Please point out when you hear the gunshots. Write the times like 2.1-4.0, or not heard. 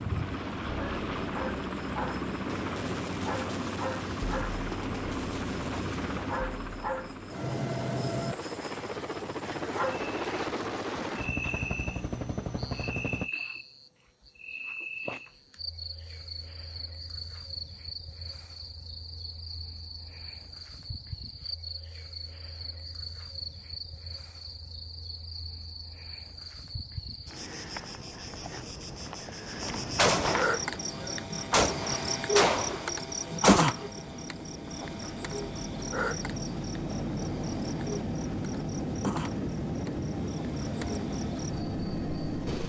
2.5-6.3, 29.9-33.7.